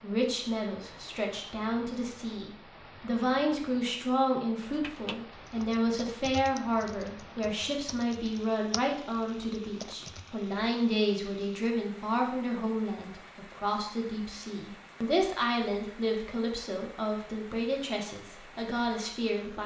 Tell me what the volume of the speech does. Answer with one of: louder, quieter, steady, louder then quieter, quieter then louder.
steady.